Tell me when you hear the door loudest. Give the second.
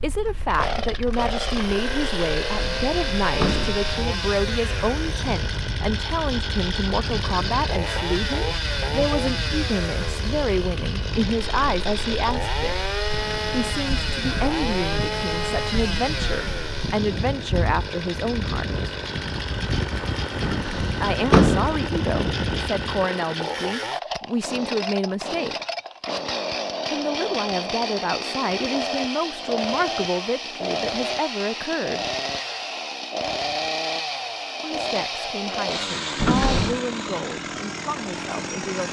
21 s.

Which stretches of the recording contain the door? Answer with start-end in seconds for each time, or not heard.
2.5-3.9, 20.4-21.8, 36.1-36.8.